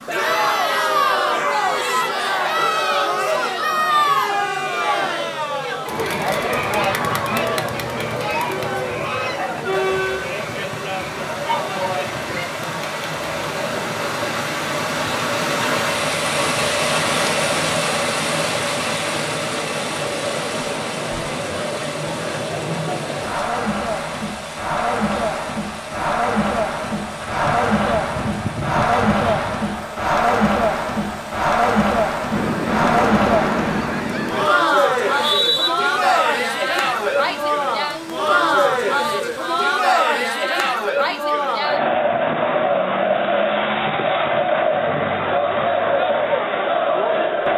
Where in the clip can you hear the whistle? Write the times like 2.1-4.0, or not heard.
35.0-35.7.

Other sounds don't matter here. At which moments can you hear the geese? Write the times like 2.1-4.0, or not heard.
6.7-9.4, 27.2-29.6, 32.3-34.5.